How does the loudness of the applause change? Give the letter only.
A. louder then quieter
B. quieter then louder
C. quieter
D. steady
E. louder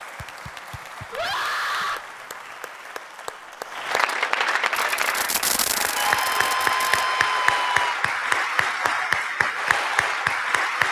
E.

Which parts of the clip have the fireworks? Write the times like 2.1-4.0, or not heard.
4.8-7.0.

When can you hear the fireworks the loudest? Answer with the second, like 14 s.
6 s.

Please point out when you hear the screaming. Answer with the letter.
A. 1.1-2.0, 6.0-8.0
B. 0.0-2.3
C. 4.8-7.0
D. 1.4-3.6
A.